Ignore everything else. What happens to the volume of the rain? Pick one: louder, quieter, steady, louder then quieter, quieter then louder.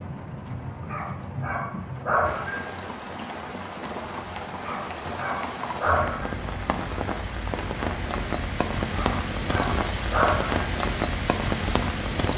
louder.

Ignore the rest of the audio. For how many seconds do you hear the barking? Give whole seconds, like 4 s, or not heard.
5 s.